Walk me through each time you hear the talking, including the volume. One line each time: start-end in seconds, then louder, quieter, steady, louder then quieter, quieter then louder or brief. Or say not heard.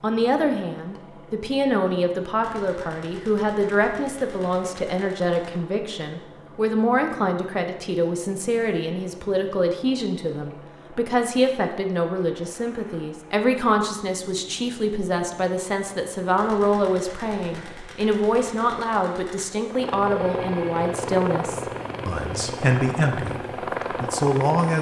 0.0-24.7 steady.